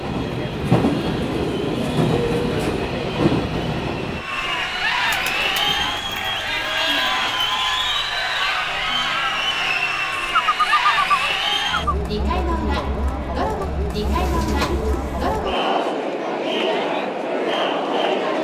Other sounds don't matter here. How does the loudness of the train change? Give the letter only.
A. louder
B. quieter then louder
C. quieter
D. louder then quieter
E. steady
C.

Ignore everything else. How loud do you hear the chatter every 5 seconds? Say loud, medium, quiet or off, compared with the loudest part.
medium, loud, loud, loud.